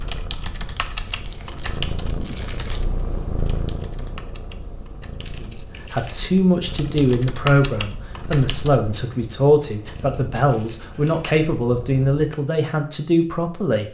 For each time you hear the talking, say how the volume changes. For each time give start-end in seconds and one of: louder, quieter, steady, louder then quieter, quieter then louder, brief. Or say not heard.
5.4-13.8 steady.